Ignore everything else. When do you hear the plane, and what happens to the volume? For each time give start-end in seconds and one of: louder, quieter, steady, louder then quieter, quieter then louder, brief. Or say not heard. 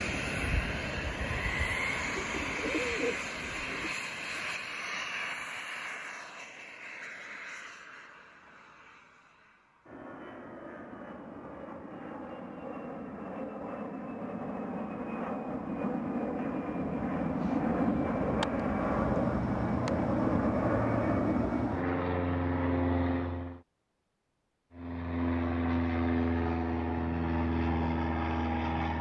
0.0-23.6 quieter then louder
24.7-28.9 steady.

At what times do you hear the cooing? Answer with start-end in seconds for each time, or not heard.
2.4-3.9.